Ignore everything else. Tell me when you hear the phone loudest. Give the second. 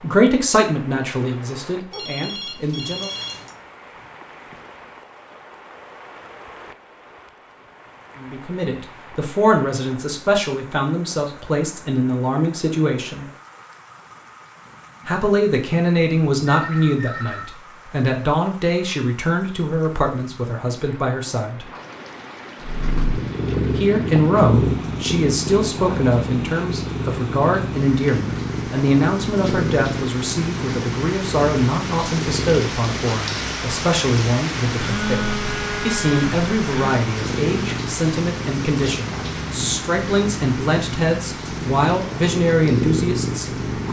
35 s.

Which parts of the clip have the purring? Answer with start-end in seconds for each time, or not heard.
22.6-43.8.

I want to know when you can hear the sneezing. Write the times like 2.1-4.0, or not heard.
not heard.